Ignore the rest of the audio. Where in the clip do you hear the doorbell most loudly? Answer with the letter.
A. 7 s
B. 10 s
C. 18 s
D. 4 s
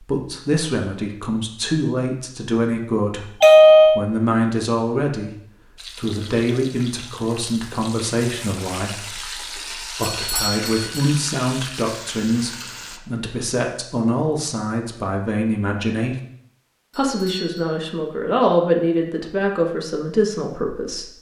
D.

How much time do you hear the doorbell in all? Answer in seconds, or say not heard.
3 s.